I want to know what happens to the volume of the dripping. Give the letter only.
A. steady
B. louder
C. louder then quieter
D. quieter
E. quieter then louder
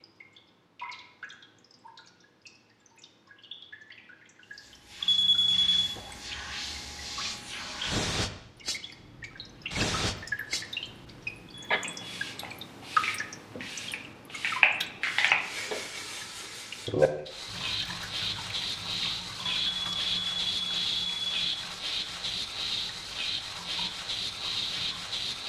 C.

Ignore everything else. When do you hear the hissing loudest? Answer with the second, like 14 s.
15 s.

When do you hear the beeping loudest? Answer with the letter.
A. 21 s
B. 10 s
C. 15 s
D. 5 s
D.